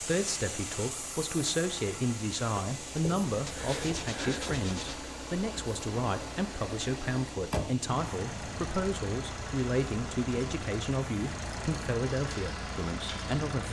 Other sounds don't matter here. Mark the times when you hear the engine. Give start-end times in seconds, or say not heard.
0.0-13.6.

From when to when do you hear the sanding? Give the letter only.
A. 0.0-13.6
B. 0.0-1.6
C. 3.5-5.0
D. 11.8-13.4
C.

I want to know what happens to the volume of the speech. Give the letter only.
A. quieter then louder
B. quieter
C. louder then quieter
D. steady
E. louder
D.